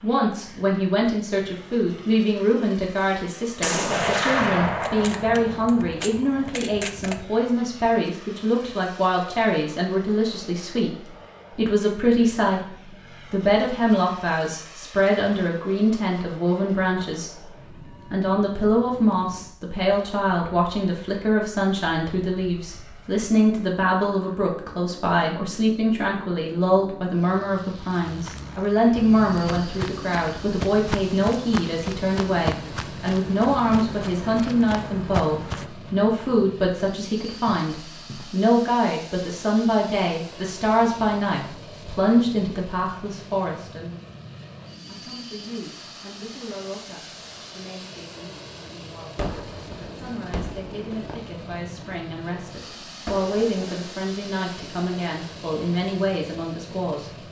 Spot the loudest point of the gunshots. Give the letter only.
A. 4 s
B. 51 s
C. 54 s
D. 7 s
A.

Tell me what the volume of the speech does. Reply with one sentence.
The loudness of the speech goes down.